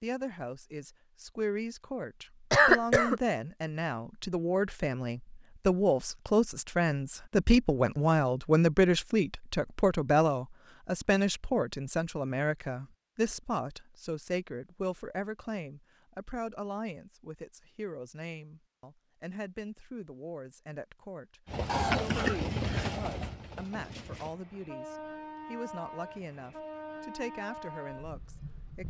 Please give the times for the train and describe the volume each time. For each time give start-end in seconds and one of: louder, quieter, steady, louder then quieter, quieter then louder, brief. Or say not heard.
21.4-28.8 quieter.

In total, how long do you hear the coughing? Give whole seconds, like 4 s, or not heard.
2 s.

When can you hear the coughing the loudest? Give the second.
3 s.